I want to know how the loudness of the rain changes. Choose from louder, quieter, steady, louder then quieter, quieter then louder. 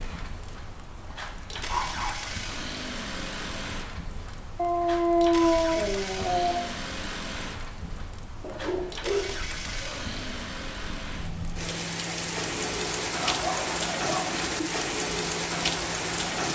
louder.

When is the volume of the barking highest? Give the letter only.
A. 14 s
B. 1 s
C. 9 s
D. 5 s
D.